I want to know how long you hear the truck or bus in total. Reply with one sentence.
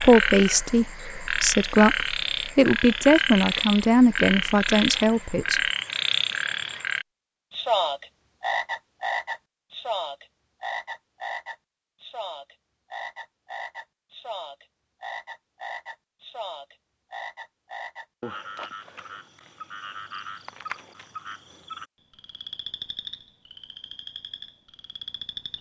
You can't hear the truck or bus here.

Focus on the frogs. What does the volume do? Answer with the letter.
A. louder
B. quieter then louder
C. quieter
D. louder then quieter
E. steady
C.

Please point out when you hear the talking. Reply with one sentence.
You can hear the talking from 0.0 to 5.6 s.